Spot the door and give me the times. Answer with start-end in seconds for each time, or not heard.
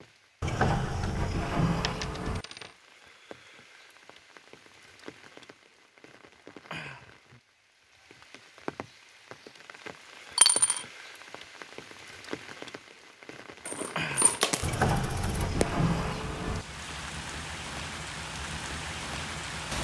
0.4-2.5, 14.6-16.6.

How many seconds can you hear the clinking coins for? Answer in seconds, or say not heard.
3 s.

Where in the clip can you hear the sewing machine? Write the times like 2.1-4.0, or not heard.
not heard.